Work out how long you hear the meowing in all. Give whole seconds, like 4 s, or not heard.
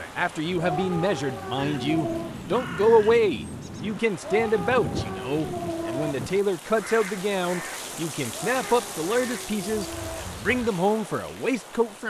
6 s.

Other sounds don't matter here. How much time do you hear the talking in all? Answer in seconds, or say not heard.
12 s.